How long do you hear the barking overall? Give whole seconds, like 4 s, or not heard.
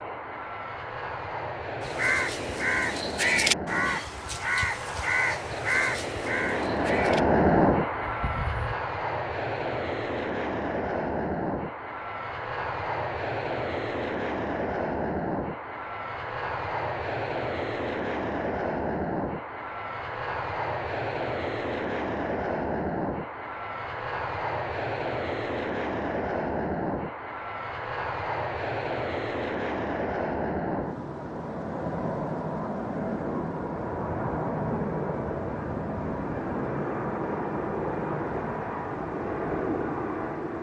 not heard.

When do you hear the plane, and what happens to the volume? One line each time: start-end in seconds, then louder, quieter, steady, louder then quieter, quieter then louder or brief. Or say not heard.
0.0-40.5 steady.